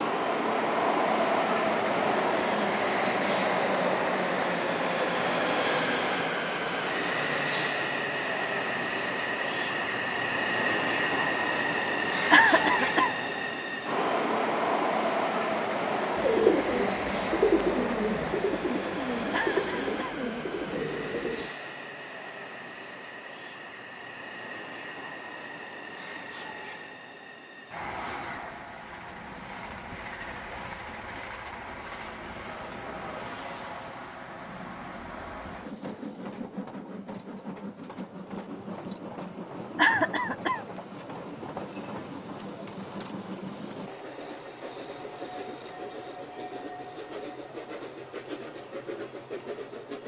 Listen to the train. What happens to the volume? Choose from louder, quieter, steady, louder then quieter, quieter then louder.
quieter.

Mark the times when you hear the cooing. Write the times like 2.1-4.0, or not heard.
16.1-21.5.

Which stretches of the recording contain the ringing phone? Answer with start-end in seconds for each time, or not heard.
not heard.